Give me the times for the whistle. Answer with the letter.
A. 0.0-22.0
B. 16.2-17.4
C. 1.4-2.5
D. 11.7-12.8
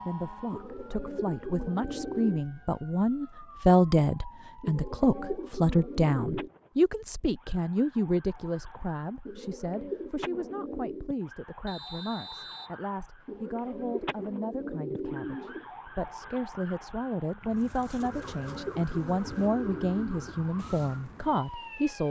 D.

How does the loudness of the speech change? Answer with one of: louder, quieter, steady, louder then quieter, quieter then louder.
quieter then louder.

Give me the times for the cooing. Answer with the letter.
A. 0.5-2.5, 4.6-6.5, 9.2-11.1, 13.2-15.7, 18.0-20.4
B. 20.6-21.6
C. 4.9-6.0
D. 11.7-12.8
A.